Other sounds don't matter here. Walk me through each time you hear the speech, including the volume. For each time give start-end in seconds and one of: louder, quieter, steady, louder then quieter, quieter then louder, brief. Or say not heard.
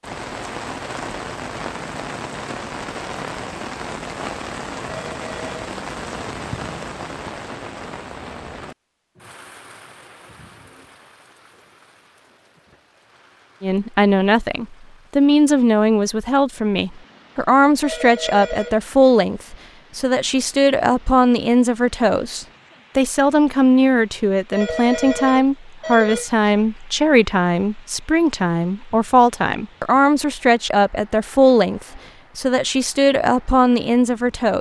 13.6-34.5 steady.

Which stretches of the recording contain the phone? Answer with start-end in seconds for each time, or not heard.
4.8-5.5, 17.8-18.8, 24.5-26.3.